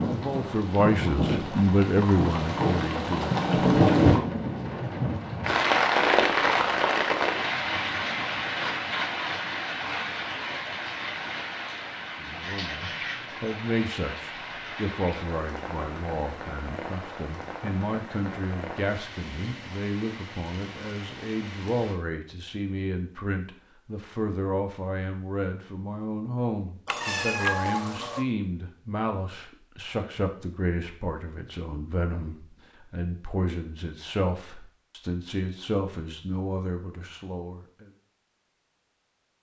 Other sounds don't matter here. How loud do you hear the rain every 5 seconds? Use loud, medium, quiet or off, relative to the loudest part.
loud, loud, medium, quiet, quiet, off, off, off.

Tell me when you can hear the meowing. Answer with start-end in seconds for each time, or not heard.
26.9-28.2.